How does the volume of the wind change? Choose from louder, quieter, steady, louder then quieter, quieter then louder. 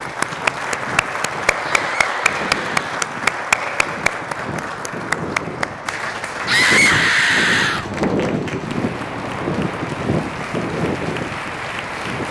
louder.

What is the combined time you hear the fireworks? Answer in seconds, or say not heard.
not heard.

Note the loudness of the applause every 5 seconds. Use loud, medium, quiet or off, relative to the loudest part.
loud, medium, medium.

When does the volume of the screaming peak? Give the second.
7 s.